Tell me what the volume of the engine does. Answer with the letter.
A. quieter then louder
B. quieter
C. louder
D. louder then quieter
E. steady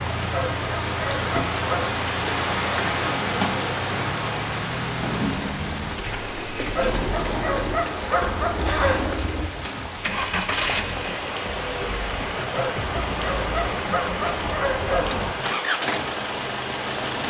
C.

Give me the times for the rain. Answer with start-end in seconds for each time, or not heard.
0.0-17.2.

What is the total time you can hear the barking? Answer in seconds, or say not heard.
7 s.